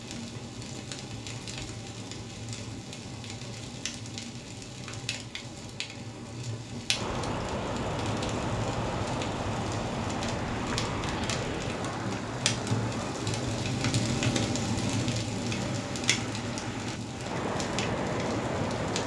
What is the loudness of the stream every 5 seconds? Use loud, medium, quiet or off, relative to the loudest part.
off, loud, loud, loud.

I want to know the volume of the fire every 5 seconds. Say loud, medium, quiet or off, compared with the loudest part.
medium, medium, loud, loud.